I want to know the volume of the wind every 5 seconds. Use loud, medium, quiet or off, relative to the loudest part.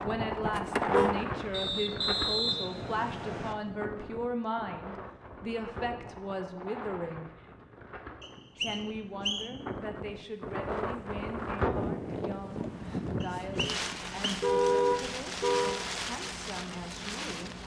loud, medium, loud, loud.